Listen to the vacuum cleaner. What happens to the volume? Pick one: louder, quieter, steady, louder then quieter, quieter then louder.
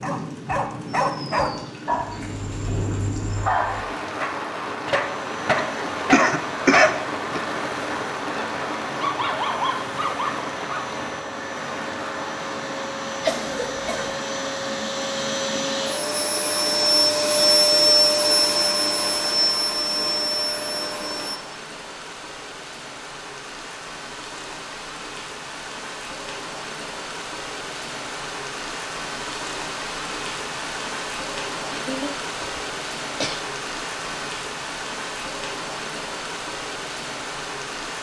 louder.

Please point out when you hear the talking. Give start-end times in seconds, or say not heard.
not heard.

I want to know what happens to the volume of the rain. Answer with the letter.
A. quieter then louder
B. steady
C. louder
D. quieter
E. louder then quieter
A.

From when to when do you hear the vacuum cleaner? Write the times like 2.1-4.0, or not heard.
5.0-21.4.